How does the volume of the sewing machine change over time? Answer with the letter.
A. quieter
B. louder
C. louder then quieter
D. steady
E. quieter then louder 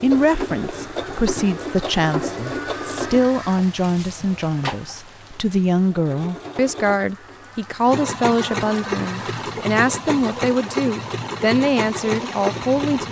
E.